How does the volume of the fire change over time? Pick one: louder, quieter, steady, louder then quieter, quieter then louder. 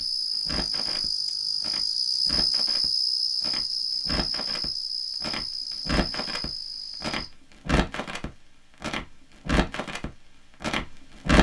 louder.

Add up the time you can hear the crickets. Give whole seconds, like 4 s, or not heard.
7 s.